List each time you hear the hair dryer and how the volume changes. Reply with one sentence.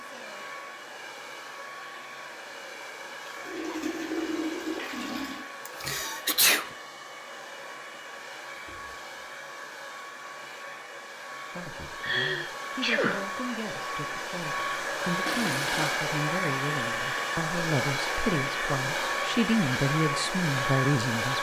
You can hear the hair dryer from 0.0 to 21.3 s, getting louder.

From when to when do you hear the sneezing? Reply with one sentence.
You can hear the sneezing from 5.7 to 6.7 s and from 12.0 to 13.3 s.